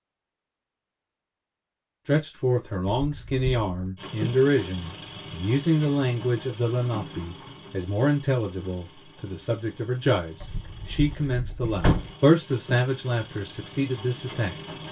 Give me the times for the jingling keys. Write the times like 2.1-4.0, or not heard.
2.9-3.6, 10.4-12.1.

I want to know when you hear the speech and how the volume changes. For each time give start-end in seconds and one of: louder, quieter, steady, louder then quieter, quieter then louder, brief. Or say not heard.
2.0-14.6 steady.